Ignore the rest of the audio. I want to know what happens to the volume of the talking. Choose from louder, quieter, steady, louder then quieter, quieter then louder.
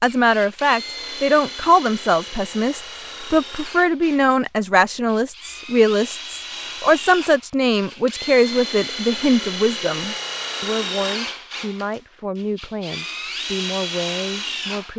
quieter.